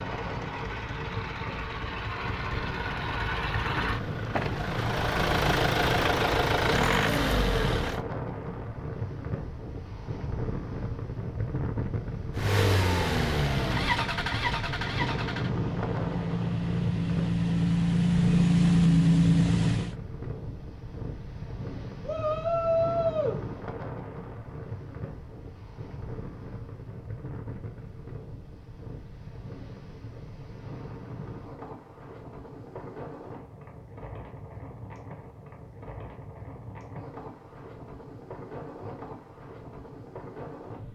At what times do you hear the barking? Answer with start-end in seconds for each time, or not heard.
not heard.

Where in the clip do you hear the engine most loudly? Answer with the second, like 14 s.
19 s.